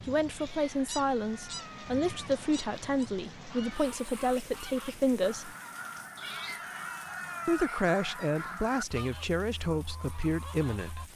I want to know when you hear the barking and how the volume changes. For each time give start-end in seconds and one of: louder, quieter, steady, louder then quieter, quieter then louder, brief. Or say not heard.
not heard.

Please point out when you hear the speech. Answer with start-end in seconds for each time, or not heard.
0.1-5.5, 7.5-11.1.